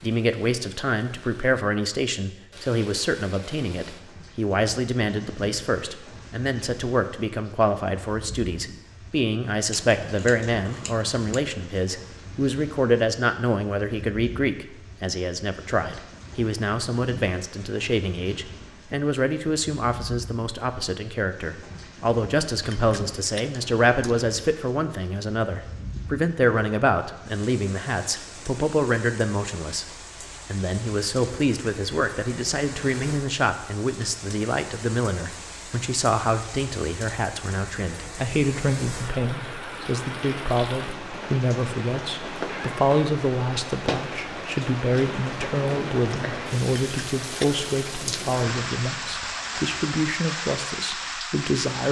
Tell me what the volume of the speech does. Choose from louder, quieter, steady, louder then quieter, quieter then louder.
steady.